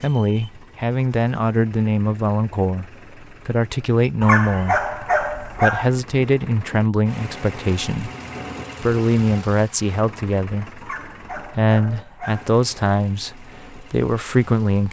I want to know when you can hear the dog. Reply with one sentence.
You can hear the dog from 4.2 to 5.9 s and from 10.8 to 12.5 s.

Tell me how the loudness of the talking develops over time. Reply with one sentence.
The volume of the talking stays about the same.